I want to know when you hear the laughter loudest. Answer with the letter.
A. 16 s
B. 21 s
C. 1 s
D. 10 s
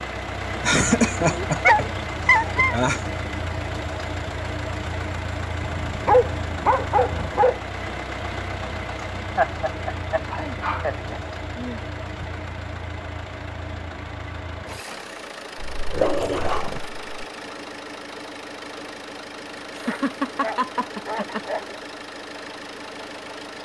C.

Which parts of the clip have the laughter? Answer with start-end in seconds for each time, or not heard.
0.6-3.1, 9.3-11.2, 19.7-21.4.